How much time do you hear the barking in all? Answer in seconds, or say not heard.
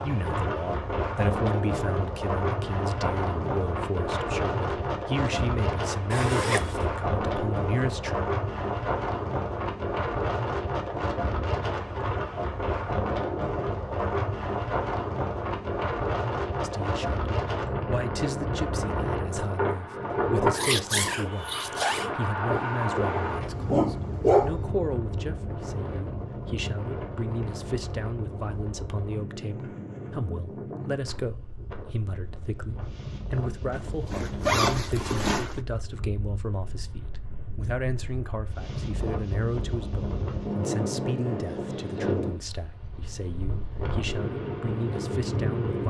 2 s.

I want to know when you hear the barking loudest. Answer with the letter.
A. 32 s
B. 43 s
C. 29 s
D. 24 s
D.